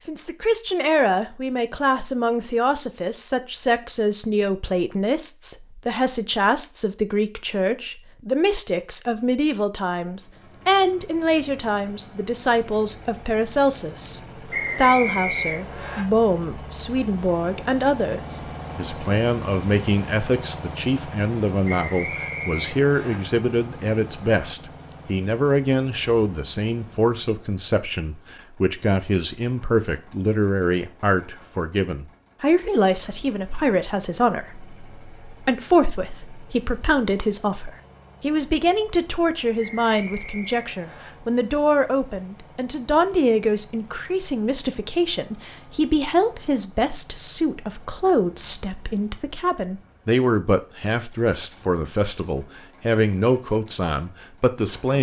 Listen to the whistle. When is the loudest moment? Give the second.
15 s.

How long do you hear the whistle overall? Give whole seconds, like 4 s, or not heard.
5 s.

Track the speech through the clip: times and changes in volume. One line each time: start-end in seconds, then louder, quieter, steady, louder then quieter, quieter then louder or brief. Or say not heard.
0.1-54.9 steady.